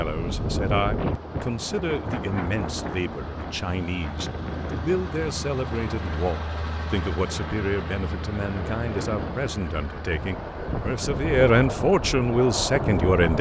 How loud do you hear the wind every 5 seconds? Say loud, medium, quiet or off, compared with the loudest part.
loud, medium, loud.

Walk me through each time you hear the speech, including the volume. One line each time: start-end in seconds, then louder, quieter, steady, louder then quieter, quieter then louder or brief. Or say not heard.
0.0-13.3 louder.